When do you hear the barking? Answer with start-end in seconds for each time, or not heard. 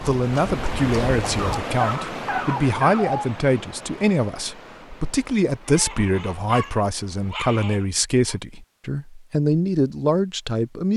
1.4-3.3, 5.7-8.3.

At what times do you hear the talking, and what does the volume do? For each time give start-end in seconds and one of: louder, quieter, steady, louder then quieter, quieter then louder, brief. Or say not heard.
0.0-10.9 steady.